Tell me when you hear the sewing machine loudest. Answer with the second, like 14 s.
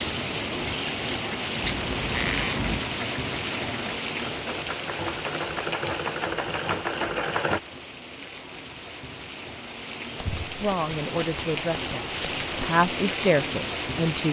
7 s.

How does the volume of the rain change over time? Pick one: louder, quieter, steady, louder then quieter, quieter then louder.
quieter then louder.